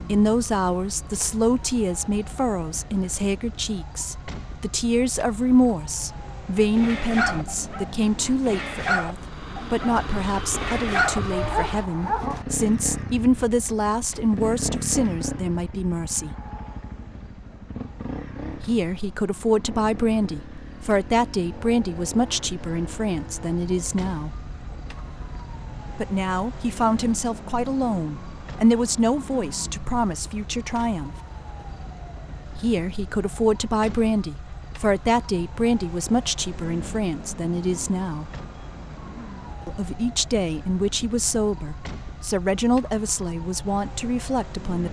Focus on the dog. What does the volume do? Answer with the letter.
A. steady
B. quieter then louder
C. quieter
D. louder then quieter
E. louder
B.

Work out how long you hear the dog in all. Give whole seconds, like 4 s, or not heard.
6 s.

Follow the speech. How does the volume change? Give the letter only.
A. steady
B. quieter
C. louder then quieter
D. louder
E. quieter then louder
A.